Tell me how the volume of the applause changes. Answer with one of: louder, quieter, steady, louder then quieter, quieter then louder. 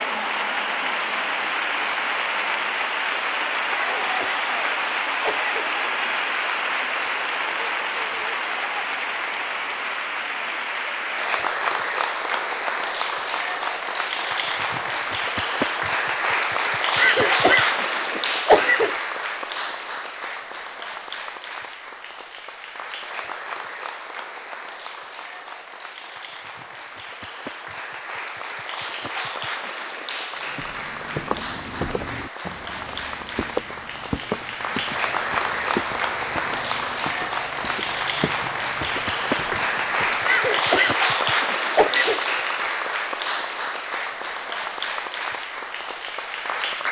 quieter then louder.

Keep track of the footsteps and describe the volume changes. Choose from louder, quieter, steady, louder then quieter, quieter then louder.
quieter.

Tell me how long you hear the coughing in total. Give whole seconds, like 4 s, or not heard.
6 s.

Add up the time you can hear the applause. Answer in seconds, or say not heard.
47 s.